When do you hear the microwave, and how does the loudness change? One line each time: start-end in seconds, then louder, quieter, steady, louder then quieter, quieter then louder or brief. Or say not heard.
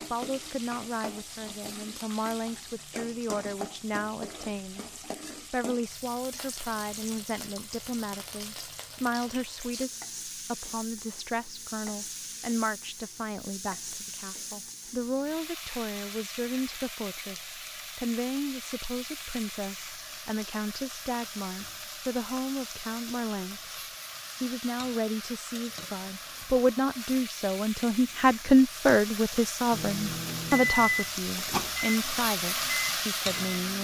29.7-33.7 quieter then louder.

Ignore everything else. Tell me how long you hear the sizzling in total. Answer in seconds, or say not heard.
34 s.